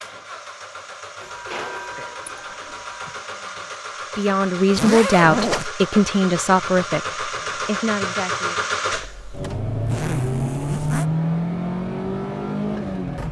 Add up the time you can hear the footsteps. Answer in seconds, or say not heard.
not heard.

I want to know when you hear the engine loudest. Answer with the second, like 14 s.
11 s.